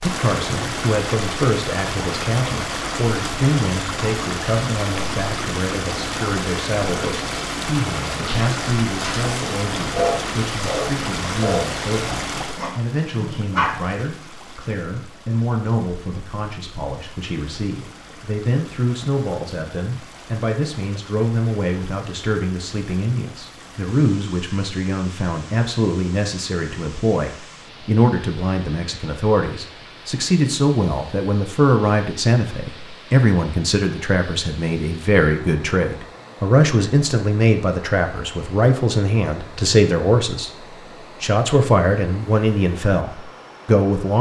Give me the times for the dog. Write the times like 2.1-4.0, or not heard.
8.2-9.2, 9.9-13.8.